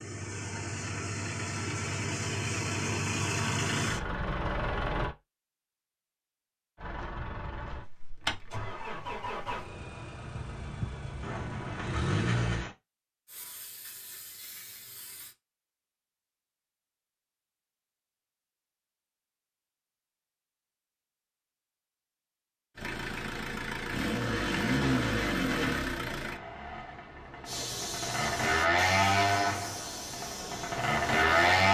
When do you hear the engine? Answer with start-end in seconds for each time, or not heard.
0.0-5.2, 6.8-12.7, 22.8-31.6.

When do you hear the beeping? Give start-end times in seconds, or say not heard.
not heard.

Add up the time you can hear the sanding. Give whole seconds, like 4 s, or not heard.
3 s.